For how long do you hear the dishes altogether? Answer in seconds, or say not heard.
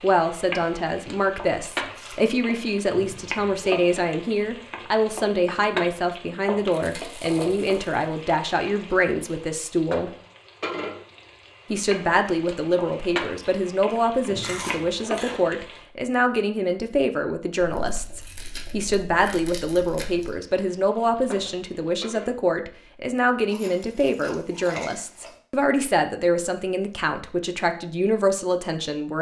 not heard.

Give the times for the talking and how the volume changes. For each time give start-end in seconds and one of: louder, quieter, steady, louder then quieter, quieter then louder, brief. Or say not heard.
0.0-10.1 steady
11.7-29.1 steady.